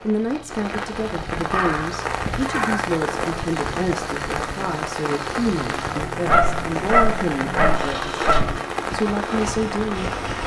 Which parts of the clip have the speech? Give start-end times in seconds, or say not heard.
0.0-10.2.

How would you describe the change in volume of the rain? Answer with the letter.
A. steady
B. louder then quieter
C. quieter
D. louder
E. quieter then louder
A.